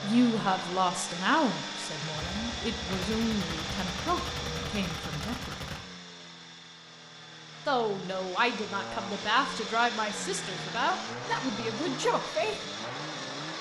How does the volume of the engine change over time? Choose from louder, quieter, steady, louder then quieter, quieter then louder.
quieter then louder.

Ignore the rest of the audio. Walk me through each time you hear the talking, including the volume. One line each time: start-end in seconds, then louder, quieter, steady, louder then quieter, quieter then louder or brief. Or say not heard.
0.0-5.6 quieter
7.7-12.6 steady.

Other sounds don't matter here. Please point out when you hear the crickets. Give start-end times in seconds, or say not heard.
not heard.